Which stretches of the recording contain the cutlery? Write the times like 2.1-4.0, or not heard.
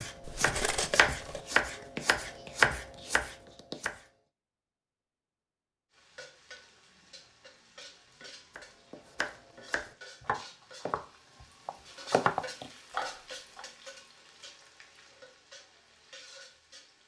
0.2-1.4.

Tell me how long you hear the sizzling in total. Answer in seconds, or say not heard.
11 s.